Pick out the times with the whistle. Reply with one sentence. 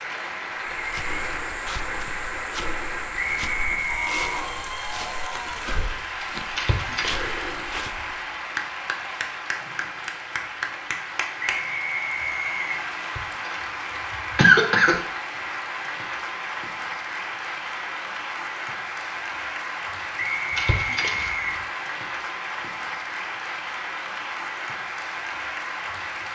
You can hear the whistle from 3.1 to 4.2 s, from 11.4 to 12.8 s and from 20.1 to 21.6 s.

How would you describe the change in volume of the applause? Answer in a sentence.
The loudness of the applause stays about the same.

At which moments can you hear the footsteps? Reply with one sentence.
You can hear the footsteps from 0.7 to 8.2 s.